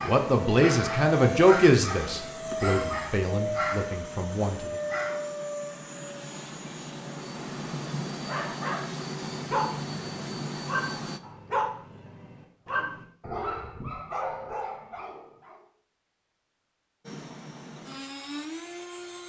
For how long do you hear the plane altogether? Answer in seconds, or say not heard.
13 s.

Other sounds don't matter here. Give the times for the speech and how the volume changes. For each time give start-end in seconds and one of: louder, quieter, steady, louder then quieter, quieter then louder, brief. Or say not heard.
0.1-4.8 quieter.